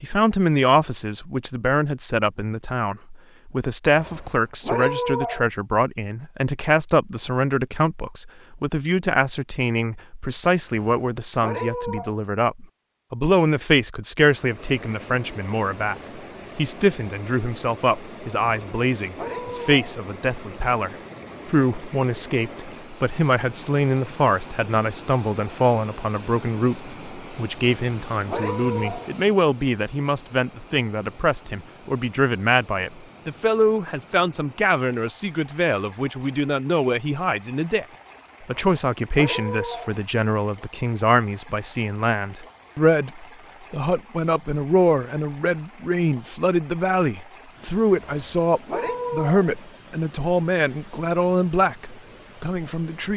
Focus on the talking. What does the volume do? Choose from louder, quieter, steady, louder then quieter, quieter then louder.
steady.